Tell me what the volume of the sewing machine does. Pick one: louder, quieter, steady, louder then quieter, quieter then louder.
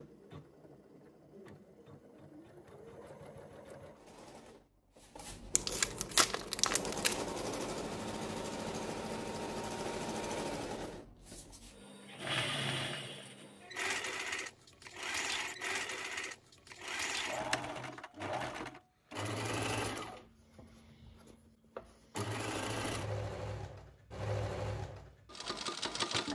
louder.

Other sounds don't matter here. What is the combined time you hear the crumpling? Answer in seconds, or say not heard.
2 s.